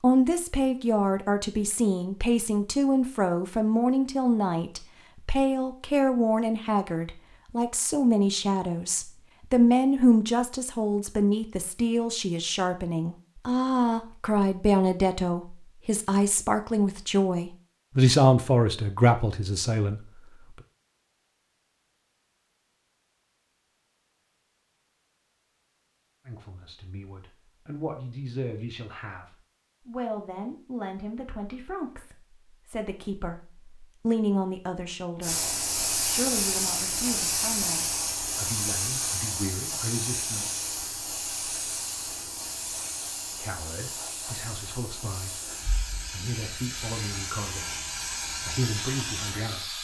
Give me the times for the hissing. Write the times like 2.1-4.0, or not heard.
35.2-49.7.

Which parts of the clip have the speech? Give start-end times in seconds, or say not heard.
0.0-20.2, 26.2-40.5, 43.4-49.7.